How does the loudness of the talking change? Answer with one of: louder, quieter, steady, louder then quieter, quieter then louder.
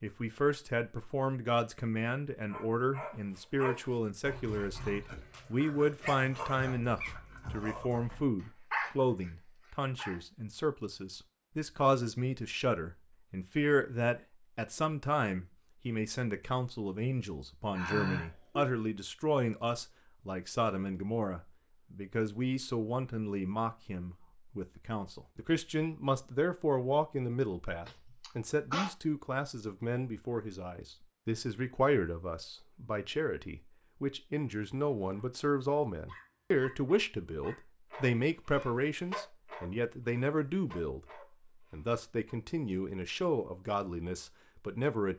steady.